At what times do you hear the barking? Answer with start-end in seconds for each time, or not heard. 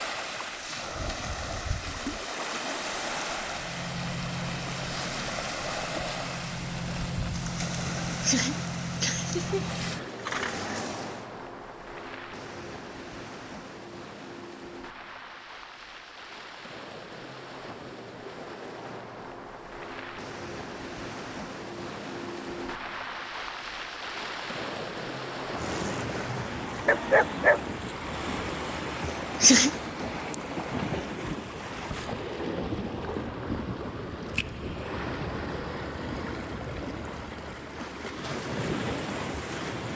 26.9-28.4.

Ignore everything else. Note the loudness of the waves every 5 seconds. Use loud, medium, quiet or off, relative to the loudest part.
loud, loud, medium, medium, loud, loud, loud, loud.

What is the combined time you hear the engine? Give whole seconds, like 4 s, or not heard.
8 s.